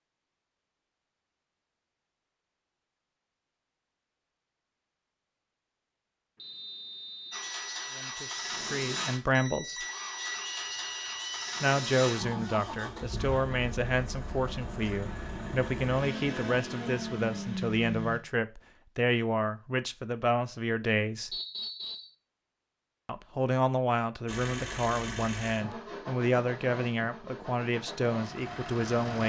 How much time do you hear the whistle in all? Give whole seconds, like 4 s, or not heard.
3 s.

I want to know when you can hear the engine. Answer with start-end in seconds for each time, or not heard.
7.3-18.2, 24.2-29.2.